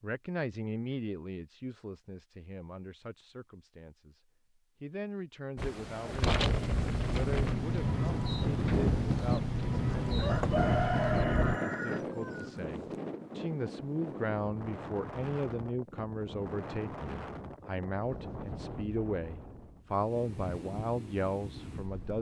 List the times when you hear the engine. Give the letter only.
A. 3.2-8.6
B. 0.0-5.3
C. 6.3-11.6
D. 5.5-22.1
C.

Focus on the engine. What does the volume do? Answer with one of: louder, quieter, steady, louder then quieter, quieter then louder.
steady.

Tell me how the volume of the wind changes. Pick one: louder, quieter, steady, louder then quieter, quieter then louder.
quieter.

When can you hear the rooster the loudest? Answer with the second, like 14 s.
11 s.